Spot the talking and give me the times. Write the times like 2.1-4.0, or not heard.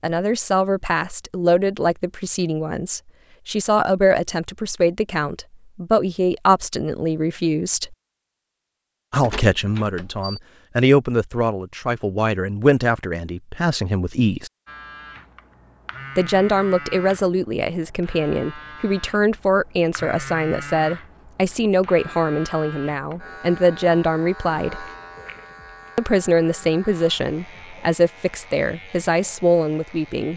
0.0-8.0, 9.1-14.5, 16.1-24.9, 25.9-30.3.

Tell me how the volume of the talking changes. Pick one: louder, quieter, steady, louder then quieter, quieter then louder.
steady.